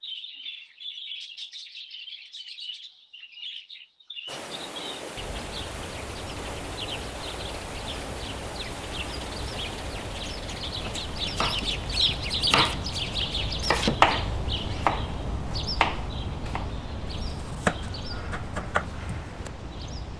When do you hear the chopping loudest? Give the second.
14 s.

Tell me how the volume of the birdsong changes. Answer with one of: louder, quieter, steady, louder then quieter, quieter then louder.
louder then quieter.